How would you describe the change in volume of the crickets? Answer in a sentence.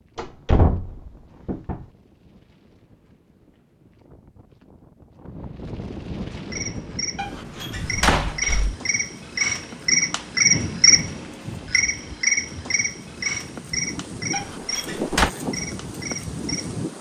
The loudness of the crickets goes up, then down.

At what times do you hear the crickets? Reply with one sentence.
The crickets can be heard from 6.3 to 16.8 s.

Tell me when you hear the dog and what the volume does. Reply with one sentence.
You can't hear the dog here.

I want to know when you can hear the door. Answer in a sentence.
The door can be heard from 0.1 to 1.9 s, from 7.2 to 8.8 s and from 14.3 to 15.3 s.